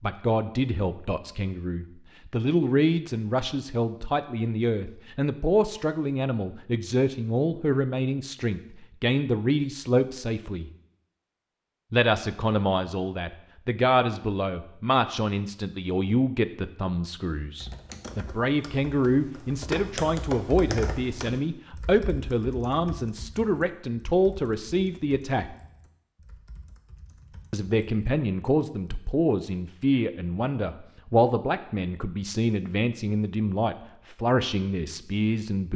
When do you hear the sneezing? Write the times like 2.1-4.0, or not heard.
not heard.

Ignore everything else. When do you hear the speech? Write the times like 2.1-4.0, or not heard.
0.0-10.7, 11.9-25.6, 27.5-35.7.